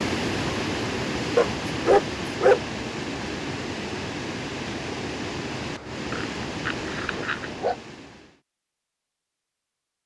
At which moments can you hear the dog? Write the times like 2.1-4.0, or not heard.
1.4-2.6, 6.1-7.8.